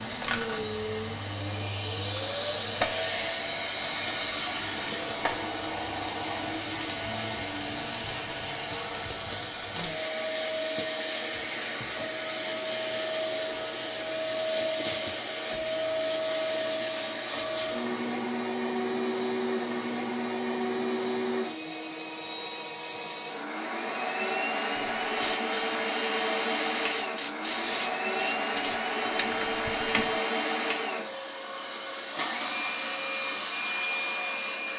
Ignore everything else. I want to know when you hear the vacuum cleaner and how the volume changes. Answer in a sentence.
The vacuum cleaner can be heard from 0.0 to 34.7 s, at a steady volume.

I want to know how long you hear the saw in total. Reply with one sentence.
The saw can't be heard in this clip.